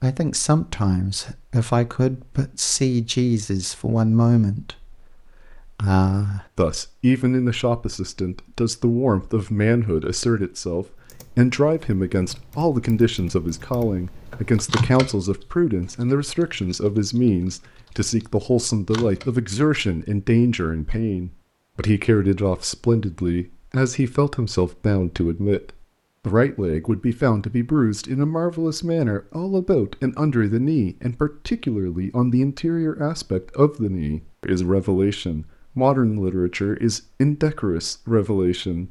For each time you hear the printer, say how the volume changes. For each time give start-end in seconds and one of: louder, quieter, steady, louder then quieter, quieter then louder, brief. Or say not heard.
not heard.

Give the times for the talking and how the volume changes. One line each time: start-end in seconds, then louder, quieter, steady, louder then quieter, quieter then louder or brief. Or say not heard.
0.0-38.8 steady.